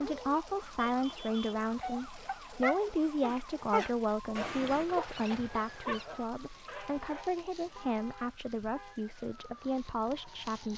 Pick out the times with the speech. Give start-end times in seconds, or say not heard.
0.0-10.7.